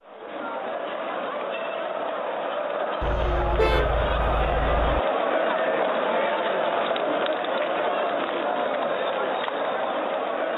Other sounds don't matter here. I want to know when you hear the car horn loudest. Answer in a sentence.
The volume of the car horn peaks at 4 seconds.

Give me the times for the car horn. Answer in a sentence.
You can hear the car horn from 3.0 to 5.0 s.